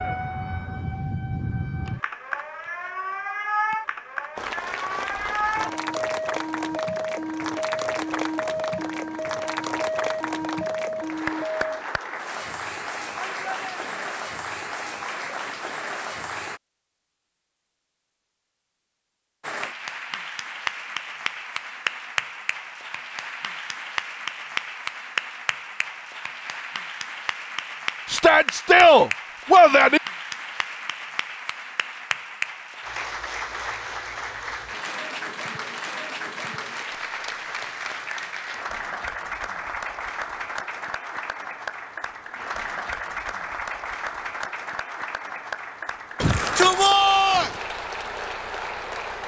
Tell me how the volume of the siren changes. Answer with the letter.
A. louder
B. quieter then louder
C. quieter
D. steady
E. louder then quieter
D.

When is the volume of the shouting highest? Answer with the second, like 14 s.
29 s.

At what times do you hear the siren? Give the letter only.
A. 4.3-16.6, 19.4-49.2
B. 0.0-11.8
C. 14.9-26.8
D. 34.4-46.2
B.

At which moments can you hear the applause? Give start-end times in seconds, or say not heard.
4.3-16.6, 19.4-49.2.